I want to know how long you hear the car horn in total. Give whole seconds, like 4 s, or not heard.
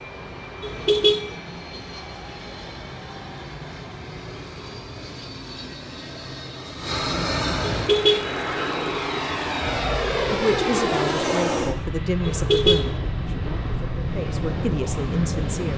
2 s.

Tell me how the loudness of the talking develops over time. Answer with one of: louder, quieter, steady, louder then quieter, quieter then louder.
quieter then louder.